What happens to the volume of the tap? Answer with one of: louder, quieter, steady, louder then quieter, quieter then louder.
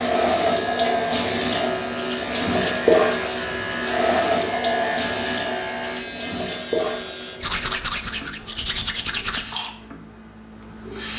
quieter.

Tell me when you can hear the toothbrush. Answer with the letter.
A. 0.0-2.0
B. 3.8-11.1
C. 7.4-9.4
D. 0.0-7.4
C.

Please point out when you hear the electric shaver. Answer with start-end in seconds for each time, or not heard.
0.0-7.4.